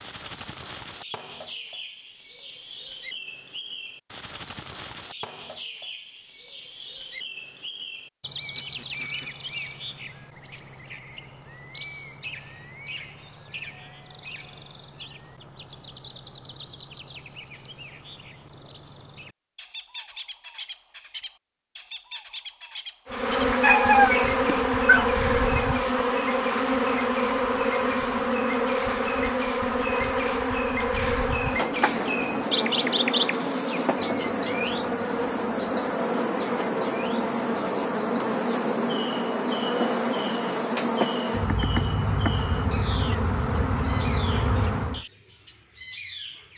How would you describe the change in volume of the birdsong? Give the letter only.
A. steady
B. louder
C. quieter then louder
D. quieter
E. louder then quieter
E.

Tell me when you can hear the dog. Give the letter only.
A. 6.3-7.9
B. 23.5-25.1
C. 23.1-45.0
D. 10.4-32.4
B.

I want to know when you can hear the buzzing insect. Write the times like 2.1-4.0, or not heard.
23.1-45.0.